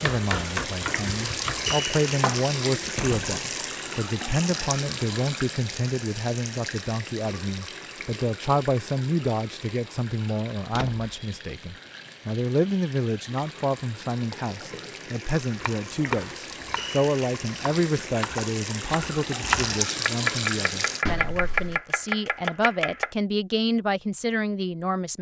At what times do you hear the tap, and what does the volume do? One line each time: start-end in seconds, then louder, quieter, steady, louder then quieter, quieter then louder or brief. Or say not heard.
0.0-21.1 quieter then louder.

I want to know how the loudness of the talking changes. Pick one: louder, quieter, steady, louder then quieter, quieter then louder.
steady.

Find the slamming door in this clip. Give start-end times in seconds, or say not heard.
3.0-3.5, 10.6-11.2, 21.1-21.8.